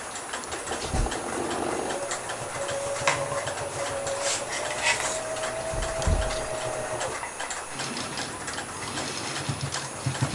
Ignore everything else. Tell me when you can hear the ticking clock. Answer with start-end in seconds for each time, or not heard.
0.0-10.3.